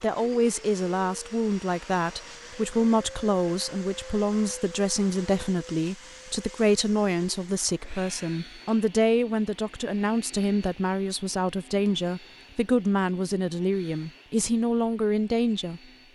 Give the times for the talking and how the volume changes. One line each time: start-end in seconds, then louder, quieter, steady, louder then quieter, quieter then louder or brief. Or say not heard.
0.0-16.1 steady.